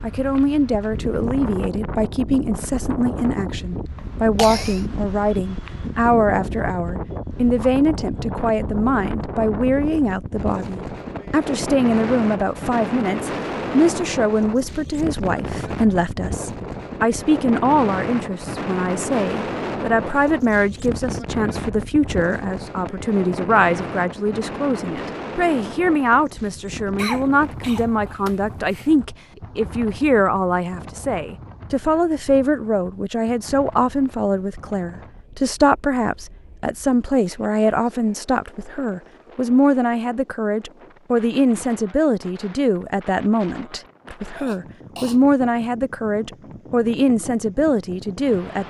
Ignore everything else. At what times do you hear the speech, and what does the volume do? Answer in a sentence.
The speech can be heard from 0.0 to 48.6 s, at a steady volume.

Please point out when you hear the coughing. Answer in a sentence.
You can hear the coughing from 4.0 to 4.8 s, from 26.9 to 28.9 s and from 44.3 to 45.2 s.